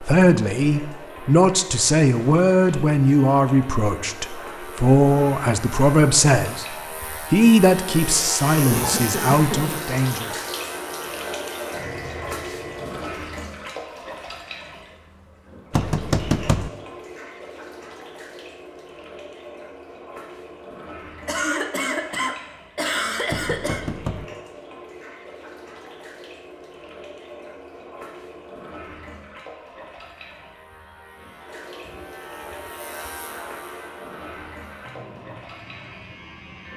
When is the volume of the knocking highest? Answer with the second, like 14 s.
16 s.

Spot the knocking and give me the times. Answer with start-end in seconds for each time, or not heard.
15.7-16.7, 23.3-24.2.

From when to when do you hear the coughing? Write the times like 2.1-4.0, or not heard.
8.7-9.8, 21.2-23.9.